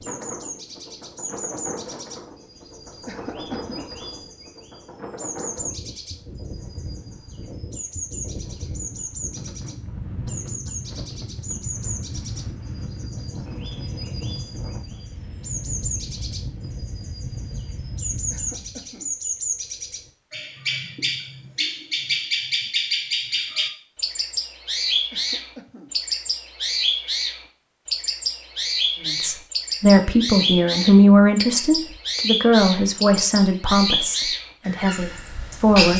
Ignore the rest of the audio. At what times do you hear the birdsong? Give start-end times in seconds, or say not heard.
0.0-35.9.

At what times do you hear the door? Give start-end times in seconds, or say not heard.
not heard.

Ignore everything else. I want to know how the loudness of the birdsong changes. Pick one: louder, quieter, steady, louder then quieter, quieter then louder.
louder.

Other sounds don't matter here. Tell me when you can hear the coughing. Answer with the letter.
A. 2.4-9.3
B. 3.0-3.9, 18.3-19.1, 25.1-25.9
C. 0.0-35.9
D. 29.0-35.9
B.